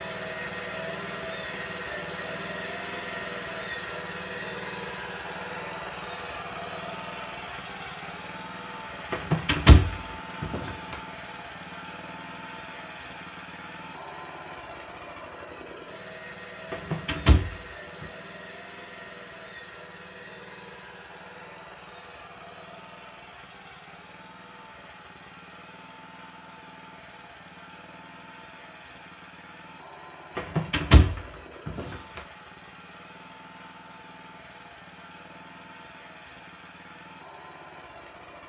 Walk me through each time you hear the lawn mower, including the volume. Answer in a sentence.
You can hear the lawn mower from 0.0 to 38.4 s, getting quieter.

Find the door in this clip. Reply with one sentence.
You can hear the door from 9.1 to 10.9 s, from 16.7 to 18.1 s and from 30.4 to 32.2 s.